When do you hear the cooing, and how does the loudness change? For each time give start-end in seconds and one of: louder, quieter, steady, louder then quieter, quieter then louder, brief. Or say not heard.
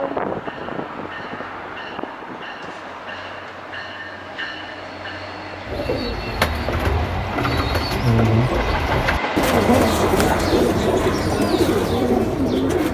5.7-12.8 louder.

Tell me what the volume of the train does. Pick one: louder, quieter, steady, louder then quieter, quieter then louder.
louder.